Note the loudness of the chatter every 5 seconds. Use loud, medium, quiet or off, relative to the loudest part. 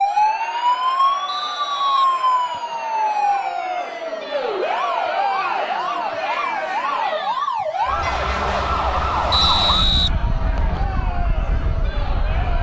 loud, loud, medium.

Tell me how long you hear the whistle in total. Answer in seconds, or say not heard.
3 s.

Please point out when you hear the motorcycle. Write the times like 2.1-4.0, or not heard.
not heard.